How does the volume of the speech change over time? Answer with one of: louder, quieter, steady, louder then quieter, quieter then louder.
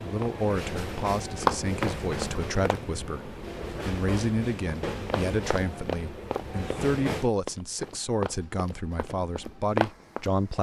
steady.